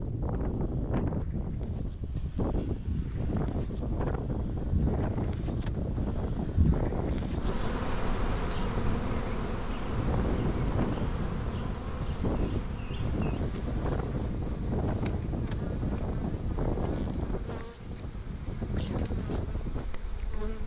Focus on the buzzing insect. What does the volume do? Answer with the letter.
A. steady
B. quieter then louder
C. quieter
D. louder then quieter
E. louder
D.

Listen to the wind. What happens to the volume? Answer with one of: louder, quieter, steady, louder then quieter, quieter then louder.
steady.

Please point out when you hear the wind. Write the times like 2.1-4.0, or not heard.
0.0-20.6.